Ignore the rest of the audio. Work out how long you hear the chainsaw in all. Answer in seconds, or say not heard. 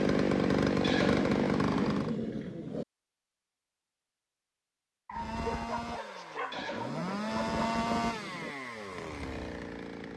7 s.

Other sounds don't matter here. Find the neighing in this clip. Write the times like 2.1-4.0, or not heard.
0.8-2.9, 6.5-8.6.